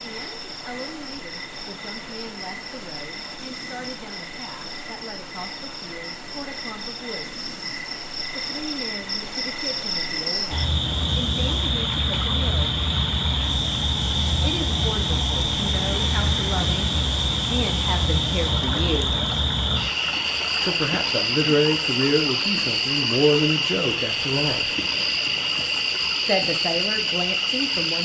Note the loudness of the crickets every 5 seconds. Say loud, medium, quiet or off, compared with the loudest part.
quiet, medium, loud, loud, loud, loud.